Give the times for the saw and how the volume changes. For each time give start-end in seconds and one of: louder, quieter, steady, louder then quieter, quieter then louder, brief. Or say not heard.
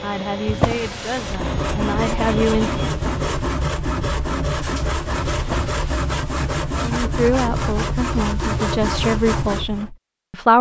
1.1-9.9 steady.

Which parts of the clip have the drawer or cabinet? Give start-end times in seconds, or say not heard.
0.5-1.5, 5.3-5.8.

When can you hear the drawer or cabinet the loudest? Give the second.
1 s.